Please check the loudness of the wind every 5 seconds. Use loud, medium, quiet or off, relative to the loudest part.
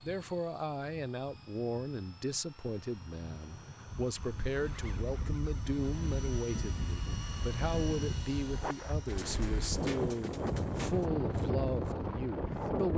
quiet, medium, loud.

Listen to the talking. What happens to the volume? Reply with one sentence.
The volume of the talking stays about the same.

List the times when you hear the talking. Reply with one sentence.
You can hear the talking from 0.0 to 12.9 s.